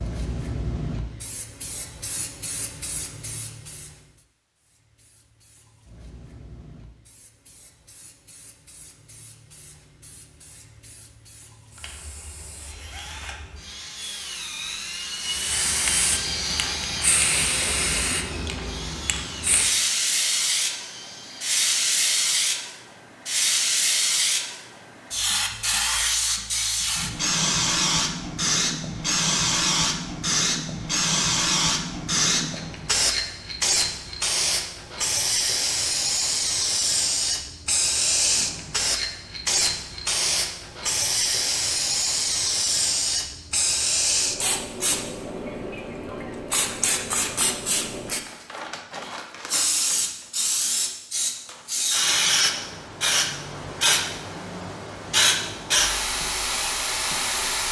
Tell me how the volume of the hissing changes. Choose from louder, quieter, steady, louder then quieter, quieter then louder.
louder.